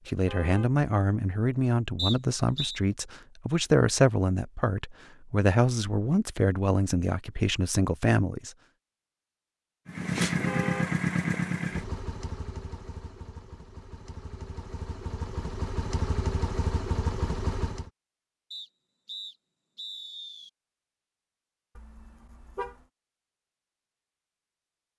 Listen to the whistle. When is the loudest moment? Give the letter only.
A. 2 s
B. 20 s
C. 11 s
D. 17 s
A.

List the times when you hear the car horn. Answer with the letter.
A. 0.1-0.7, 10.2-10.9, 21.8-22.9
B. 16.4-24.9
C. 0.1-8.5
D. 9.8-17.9
A.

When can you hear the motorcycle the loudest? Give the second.
11 s.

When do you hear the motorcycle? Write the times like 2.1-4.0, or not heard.
9.8-17.9.